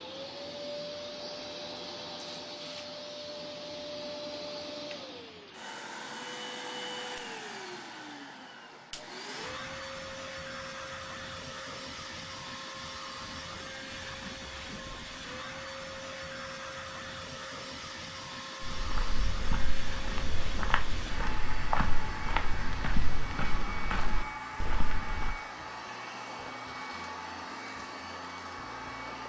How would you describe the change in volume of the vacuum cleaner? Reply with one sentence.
The loudness of the vacuum cleaner stays about the same.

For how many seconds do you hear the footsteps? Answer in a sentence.
The footsteps can be heard for 7 seconds in total.